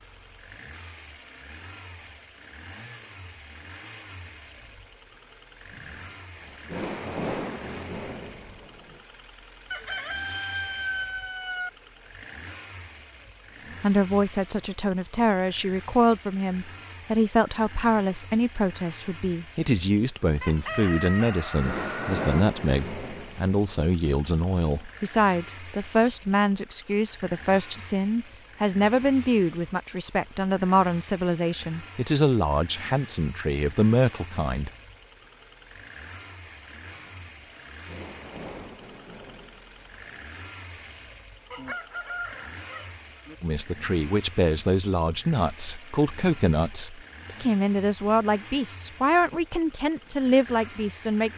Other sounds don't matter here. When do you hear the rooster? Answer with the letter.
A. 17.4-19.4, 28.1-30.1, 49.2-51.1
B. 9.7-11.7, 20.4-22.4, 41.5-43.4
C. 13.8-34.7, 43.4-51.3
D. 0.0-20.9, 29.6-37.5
B.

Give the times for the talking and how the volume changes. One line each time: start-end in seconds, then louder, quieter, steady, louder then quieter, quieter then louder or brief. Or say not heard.
13.8-34.7 steady
43.4-51.3 steady.